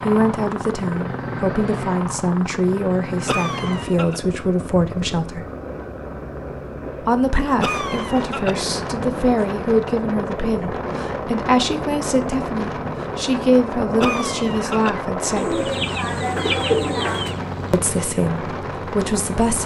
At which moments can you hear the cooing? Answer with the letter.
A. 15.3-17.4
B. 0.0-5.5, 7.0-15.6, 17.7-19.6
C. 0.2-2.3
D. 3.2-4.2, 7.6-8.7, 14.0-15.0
A.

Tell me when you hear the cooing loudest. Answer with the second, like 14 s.
17 s.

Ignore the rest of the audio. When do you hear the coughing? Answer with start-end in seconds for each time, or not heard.
3.2-4.2, 7.6-8.7, 14.0-15.0.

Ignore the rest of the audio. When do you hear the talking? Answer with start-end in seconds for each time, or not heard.
0.0-5.5, 7.0-15.6, 17.7-19.6.